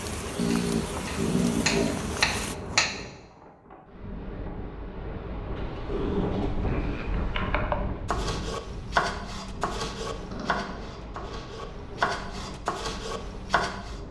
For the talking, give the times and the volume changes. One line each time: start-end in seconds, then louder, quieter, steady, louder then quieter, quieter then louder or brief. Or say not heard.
not heard.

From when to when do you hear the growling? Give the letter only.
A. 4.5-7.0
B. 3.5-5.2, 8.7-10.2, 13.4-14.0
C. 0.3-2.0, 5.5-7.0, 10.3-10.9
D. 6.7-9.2
C.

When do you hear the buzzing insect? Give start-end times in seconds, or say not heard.
0.0-2.5.